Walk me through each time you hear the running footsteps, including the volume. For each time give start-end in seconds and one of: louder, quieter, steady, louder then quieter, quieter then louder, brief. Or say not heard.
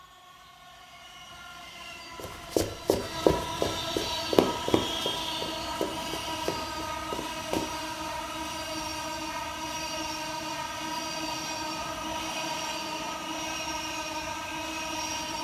2.1-7.7 quieter.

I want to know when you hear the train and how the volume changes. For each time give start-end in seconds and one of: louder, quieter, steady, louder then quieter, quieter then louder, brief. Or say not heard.
0.0-15.3 louder.